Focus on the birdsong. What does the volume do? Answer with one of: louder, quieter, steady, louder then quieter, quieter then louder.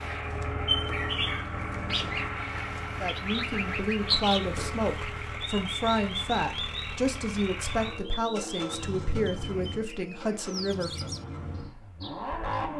quieter.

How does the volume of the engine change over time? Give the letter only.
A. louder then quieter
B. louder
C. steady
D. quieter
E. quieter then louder
D.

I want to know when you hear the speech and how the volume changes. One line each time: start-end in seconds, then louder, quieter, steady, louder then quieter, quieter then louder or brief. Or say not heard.
3.0-10.9 steady.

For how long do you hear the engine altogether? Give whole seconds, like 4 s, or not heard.
13 s.